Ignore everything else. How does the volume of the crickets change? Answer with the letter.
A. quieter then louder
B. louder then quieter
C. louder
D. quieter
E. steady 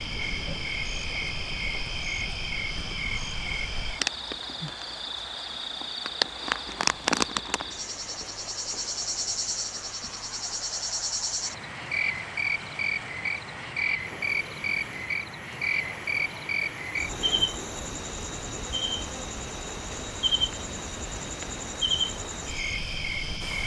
E.